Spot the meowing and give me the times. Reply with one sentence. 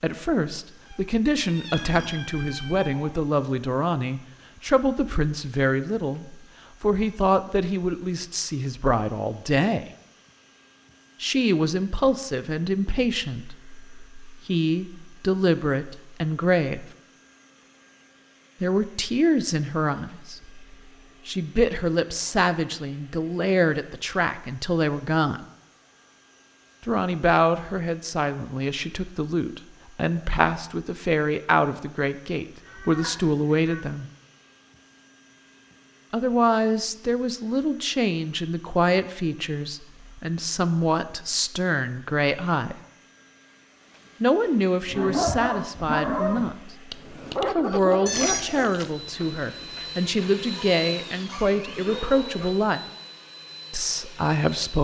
The meowing can be heard from 0.8 to 3.2 s, from 32.6 to 33.9 s and from 48.0 to 48.9 s.